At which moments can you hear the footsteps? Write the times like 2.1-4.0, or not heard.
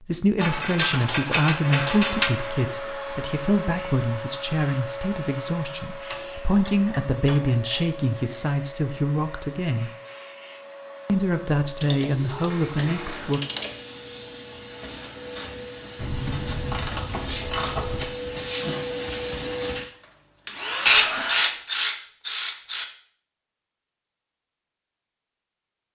not heard.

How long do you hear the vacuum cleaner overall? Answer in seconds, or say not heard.
20 s.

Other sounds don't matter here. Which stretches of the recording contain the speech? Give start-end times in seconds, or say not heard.
0.1-9.9, 11.1-13.4.